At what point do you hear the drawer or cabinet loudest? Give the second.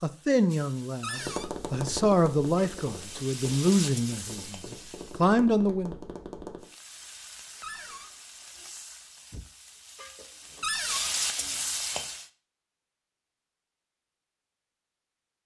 11 s.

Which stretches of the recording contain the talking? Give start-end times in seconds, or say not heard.
0.0-6.0.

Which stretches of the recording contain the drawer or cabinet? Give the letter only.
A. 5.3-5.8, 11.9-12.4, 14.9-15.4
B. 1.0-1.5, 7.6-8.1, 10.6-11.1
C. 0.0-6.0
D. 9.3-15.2
B.